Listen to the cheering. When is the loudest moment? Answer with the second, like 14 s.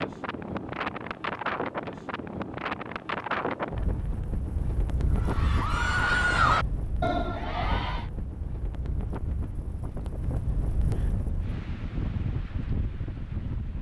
6 s.